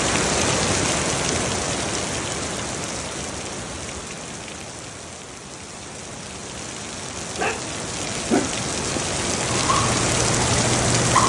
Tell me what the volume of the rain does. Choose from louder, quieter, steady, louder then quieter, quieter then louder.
quieter then louder.